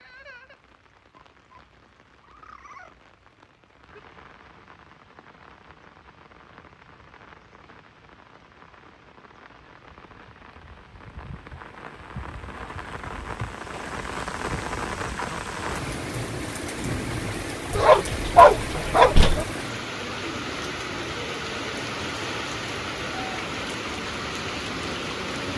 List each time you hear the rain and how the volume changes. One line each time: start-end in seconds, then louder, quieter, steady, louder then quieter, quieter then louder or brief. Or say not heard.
0.0-25.5 louder.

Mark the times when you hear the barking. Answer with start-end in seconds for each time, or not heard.
17.7-19.4.